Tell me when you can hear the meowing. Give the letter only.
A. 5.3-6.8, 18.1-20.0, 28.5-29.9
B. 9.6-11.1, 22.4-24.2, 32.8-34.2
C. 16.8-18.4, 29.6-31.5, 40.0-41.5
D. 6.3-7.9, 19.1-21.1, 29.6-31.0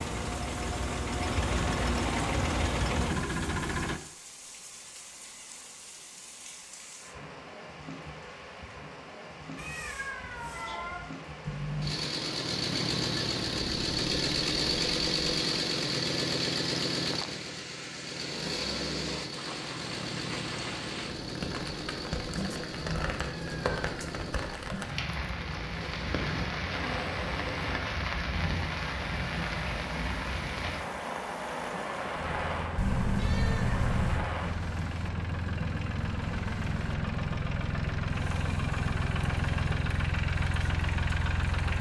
B.